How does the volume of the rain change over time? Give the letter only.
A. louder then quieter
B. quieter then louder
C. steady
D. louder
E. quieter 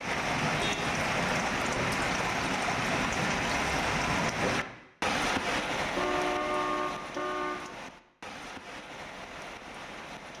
E.